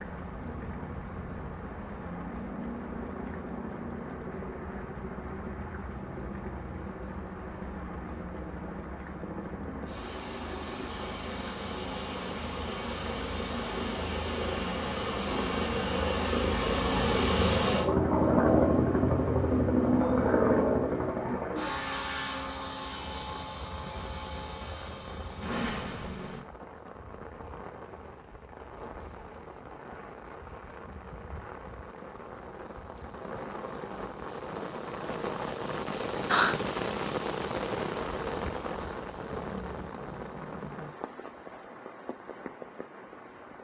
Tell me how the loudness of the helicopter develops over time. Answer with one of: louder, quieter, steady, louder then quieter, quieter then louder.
louder then quieter.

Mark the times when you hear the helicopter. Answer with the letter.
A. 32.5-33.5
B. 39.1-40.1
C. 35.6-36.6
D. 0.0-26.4
D.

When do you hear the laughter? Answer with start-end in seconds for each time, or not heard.
35.6-36.6.